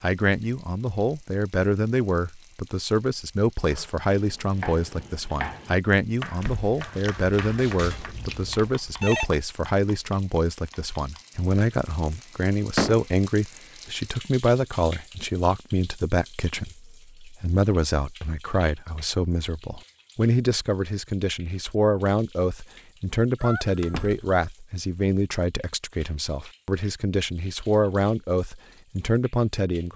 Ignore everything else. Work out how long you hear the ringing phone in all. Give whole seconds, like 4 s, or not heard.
2 s.